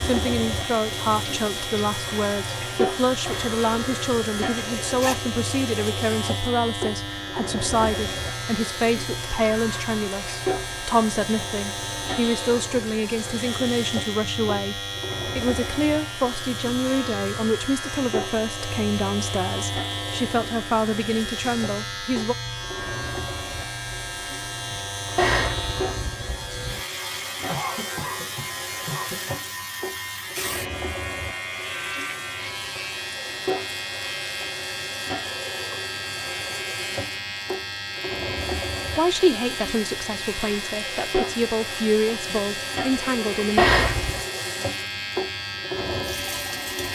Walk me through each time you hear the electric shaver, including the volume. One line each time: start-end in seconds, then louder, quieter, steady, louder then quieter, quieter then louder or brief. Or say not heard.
0.0-46.8 steady.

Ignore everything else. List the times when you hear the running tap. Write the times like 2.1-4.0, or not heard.
0.0-46.8.